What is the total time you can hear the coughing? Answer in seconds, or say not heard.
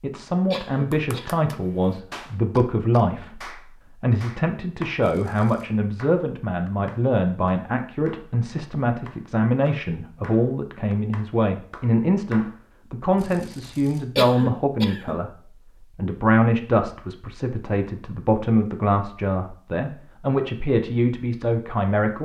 2 s.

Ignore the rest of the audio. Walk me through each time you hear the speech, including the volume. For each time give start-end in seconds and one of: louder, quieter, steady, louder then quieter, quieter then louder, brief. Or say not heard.
0.0-22.2 steady.